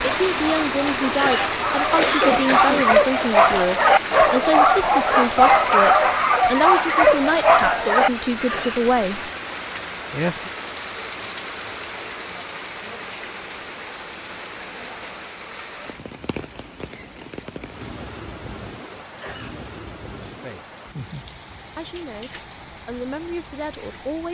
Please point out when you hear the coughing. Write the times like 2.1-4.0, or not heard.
1.1-2.9, 8.4-8.8, 19.1-19.6.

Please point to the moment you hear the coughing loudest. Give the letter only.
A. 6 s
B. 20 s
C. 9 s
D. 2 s
D.